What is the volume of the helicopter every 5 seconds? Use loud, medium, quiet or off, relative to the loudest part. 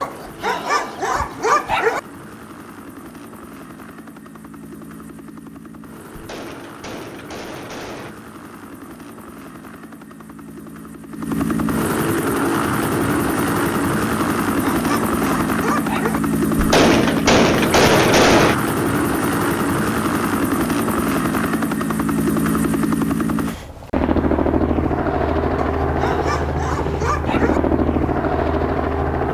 quiet, quiet, loud, loud, loud, loud.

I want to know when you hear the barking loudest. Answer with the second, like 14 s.
2 s.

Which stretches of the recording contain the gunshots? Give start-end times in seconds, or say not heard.
6.2-8.2, 16.6-18.6.